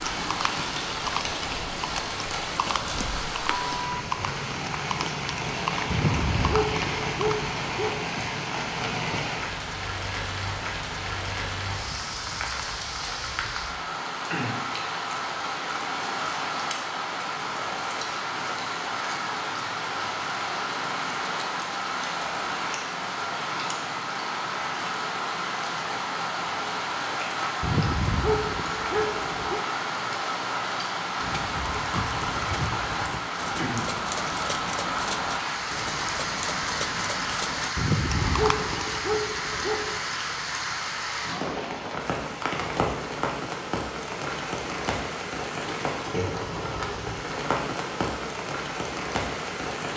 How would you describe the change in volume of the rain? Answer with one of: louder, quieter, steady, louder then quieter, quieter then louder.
steady.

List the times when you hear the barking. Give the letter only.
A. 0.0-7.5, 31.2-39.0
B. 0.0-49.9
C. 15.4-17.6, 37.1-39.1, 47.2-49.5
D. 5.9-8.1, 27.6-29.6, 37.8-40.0
D.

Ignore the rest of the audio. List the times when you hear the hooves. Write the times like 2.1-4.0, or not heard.
0.0-7.5, 31.2-39.0.